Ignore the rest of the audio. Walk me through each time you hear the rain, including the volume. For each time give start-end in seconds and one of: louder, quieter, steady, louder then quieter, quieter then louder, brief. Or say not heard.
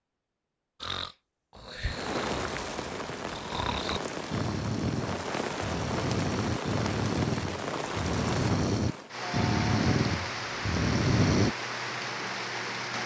1.9-13.0 steady.